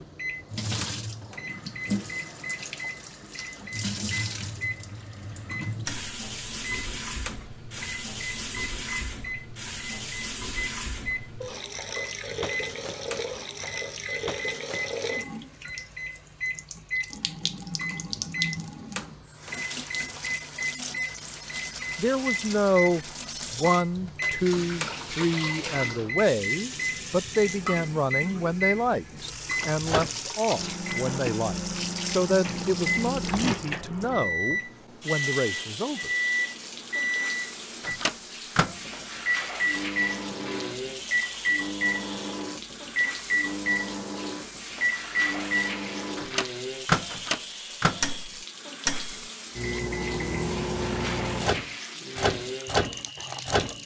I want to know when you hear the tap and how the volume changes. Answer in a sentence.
You can hear the tap from 0.0 to 53.8 s, at a steady volume.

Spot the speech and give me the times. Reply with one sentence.
You can hear the speech from 21.9 to 36.1 s.